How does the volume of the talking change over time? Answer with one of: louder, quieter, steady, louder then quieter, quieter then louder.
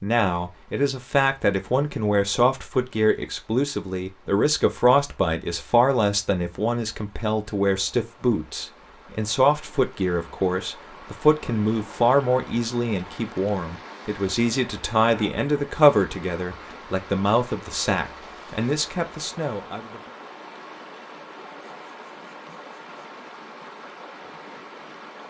steady.